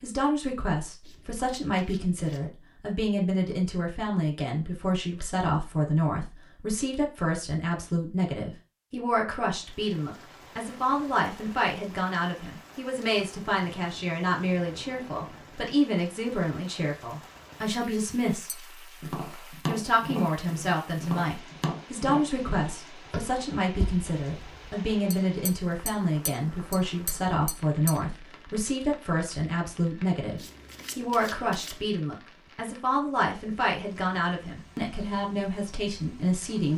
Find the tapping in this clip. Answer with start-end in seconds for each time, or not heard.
18.4-27.9.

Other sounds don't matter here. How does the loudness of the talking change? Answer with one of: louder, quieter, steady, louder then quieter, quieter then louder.
steady.